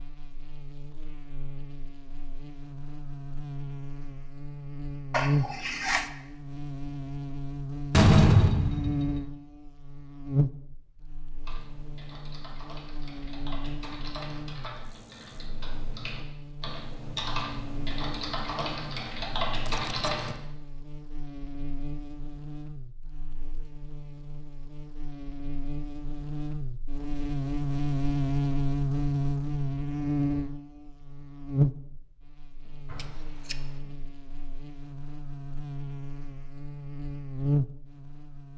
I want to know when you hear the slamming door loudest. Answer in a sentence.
The volume of the slamming door peaks at 8 seconds.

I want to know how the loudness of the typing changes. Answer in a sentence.
The loudness of the typing goes up.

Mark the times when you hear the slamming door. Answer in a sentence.
You can hear the slamming door from 7.9 to 9.2 s and from 32.6 to 33.9 s.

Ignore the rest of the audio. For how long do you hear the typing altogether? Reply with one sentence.
You can hear the typing for 9 seconds altogether.